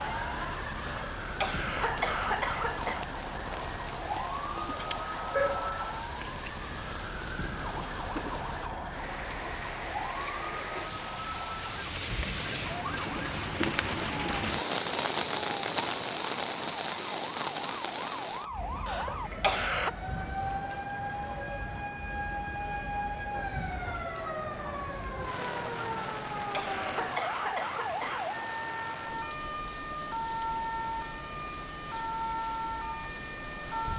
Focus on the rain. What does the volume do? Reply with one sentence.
The loudness of the rain goes up, then down.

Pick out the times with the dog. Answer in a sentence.
You can hear the dog from 4.5 to 5.9 s.